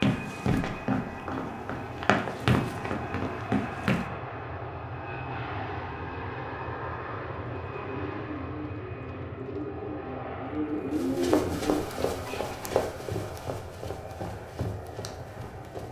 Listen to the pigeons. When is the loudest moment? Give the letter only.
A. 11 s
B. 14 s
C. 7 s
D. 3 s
A.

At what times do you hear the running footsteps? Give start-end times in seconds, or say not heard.
0.0-4.0, 10.9-15.8.